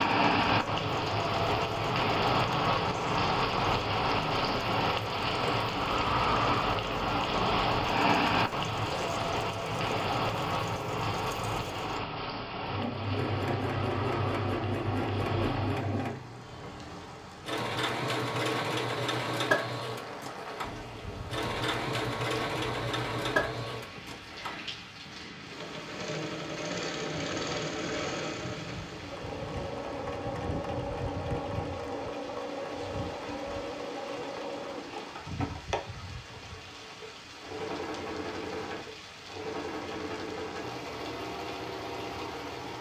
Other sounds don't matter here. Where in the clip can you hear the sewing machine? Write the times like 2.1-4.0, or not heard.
0.0-42.7.